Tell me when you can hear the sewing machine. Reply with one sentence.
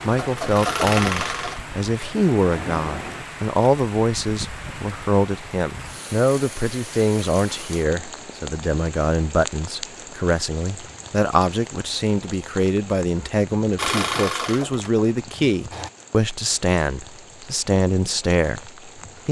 You can hear the sewing machine from 0.0 to 3.7 s and from 13.8 to 15.9 s.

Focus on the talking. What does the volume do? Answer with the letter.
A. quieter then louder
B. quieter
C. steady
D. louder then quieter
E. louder
C.